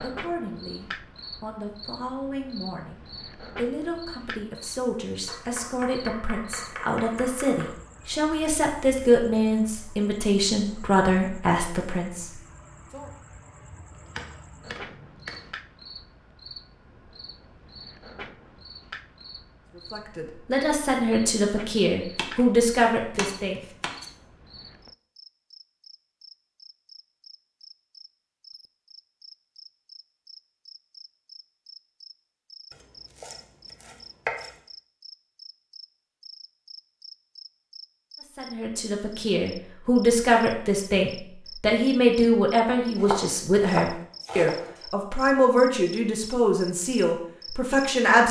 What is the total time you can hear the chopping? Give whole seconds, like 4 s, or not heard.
9 s.